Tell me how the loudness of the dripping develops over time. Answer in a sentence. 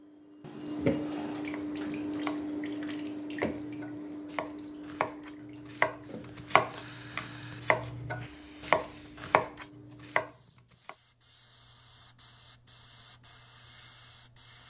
The volume of the dripping goes down.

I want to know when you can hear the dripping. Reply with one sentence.
You can hear the dripping from 0.0 to 10.3 s.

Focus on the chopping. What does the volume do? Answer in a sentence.
The loudness of the chopping goes up.